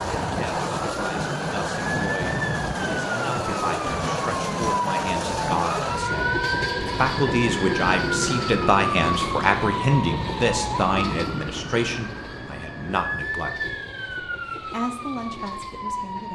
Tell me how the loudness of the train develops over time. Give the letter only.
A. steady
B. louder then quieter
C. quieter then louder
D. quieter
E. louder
D.